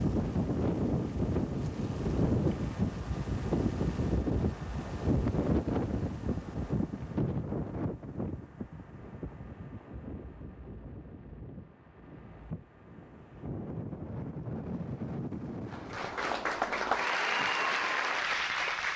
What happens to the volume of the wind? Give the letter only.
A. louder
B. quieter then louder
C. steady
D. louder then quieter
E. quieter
B.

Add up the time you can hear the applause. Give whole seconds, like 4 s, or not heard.
3 s.